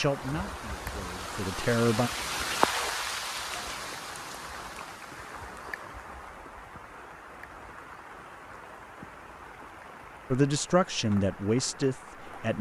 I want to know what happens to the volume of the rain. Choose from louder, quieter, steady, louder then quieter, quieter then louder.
quieter.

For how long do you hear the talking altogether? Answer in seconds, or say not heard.
4 s.